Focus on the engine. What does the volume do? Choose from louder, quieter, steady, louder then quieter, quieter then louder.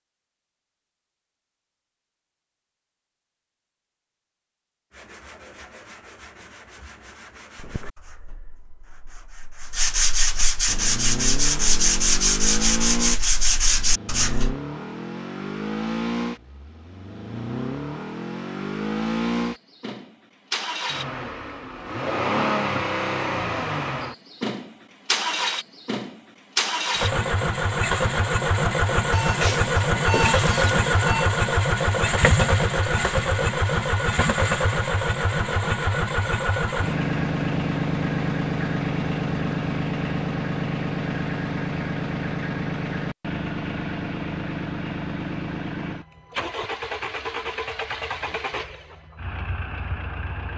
louder then quieter.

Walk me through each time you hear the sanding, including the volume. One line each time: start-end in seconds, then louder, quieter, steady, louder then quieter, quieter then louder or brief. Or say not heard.
4.9-14.6 louder.